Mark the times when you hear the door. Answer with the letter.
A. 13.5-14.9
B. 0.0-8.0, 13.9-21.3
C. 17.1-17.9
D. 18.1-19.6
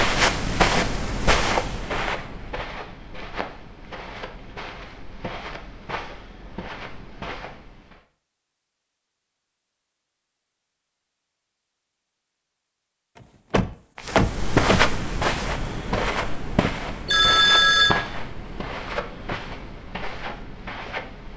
A.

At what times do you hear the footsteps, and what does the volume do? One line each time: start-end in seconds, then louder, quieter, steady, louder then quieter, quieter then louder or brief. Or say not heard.
0.0-8.0 quieter
13.9-21.3 quieter.